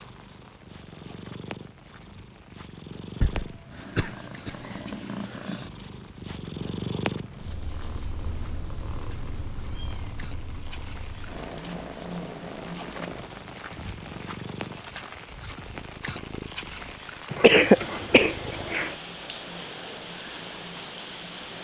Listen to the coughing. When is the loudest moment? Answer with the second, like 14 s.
18 s.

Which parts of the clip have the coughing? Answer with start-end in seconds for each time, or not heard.
3.2-5.0, 17.3-18.9.